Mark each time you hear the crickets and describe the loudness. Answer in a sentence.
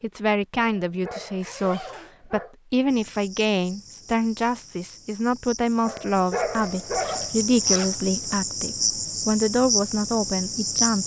You can hear the crickets from 2.9 to 11.0 s, getting louder.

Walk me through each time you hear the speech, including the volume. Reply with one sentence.
The speech can be heard from 0.0 to 11.0 s, at a steady volume.